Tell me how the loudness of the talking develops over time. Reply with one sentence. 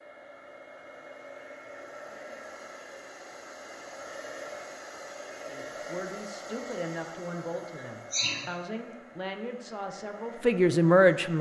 The volume of the talking goes up.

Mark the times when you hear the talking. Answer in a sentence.
You can hear the talking from 5.5 to 11.3 s.